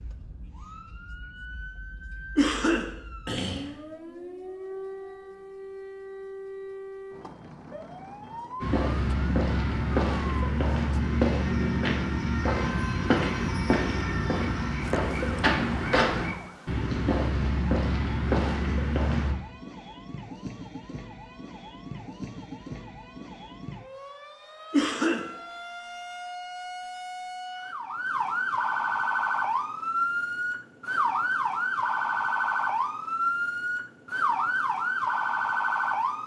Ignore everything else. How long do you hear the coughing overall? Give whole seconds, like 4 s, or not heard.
2 s.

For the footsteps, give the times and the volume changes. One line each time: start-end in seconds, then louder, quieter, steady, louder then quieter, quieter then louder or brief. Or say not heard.
8.6-19.4 steady.